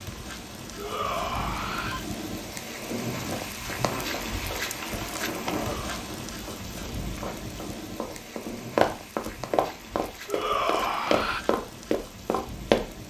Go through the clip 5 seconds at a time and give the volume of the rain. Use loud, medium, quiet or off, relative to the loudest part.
loud, loud, medium.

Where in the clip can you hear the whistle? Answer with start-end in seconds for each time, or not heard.
not heard.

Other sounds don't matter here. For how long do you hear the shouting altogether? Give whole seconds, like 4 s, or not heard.
3 s.